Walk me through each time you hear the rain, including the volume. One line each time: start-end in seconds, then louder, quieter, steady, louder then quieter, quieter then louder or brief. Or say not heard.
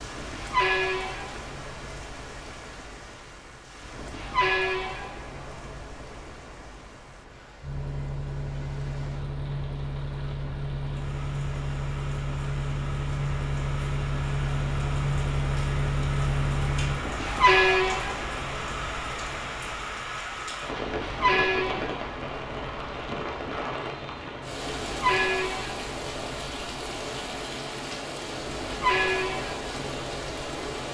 0.0-30.8 louder.